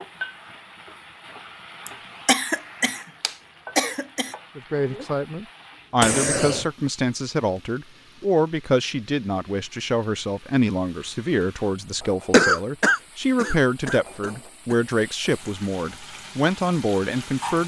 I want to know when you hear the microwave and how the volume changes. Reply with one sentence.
You can't hear the microwave here.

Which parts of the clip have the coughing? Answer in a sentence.
The coughing can be heard from 1.9 to 4.3 s, from 6.0 to 6.7 s and from 12.3 to 14.8 s.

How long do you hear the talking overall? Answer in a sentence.
The talking can be heard for 13 seconds in total.